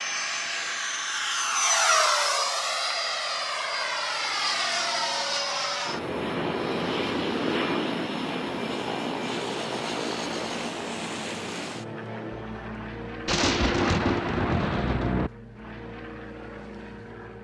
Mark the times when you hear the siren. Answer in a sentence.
You can't hear the siren here.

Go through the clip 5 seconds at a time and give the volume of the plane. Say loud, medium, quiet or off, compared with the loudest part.
loud, loud, medium, quiet.